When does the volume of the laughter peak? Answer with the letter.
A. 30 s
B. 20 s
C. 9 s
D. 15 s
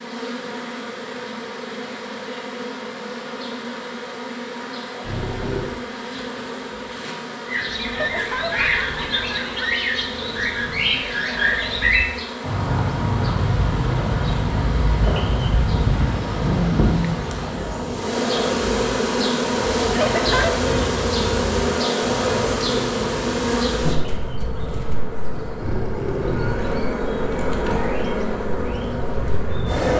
B.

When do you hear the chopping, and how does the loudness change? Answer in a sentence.
The chopping can't be heard in this clip.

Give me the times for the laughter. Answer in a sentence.
The laughter can be heard from 7.9 to 9.8 s and from 19.9 to 20.6 s.